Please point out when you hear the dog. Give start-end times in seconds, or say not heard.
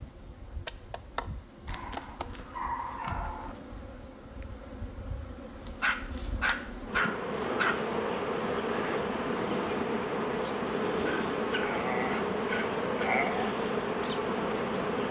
1.6-3.5, 5.8-7.8, 10.9-13.5.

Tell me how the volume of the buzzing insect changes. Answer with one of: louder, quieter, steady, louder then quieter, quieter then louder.
louder.